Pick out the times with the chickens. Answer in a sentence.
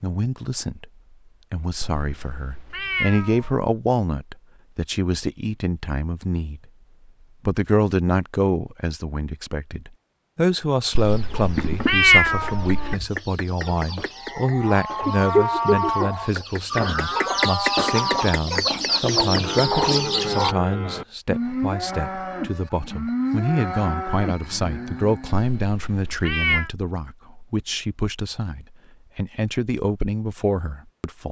The chickens can be heard from 10.9 to 20.6 s.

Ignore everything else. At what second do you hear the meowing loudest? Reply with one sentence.
The volume of the meowing peaks at 12 seconds.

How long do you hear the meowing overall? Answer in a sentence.
The meowing can be heard for 5 seconds in total.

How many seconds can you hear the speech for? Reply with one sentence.
You can hear the speech for 30 seconds altogether.